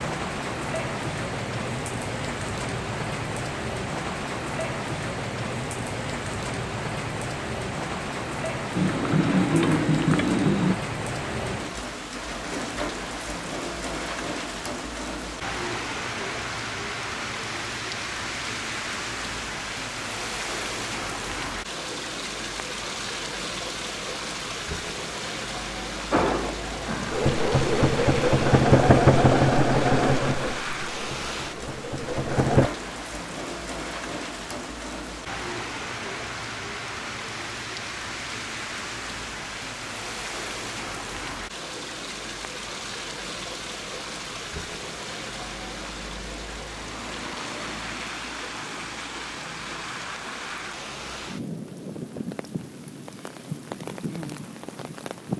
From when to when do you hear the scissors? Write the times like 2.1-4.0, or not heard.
not heard.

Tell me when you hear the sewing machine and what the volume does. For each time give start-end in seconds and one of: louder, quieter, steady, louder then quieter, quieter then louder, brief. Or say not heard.
8.8-10.8 brief
26.1-32.7 louder then quieter.